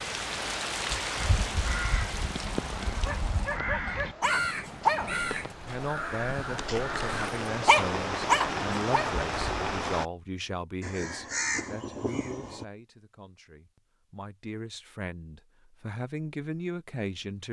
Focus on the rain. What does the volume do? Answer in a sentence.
The volume of the rain goes down, then up.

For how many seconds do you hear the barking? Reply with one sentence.
The barking can be heard for 7 seconds in total.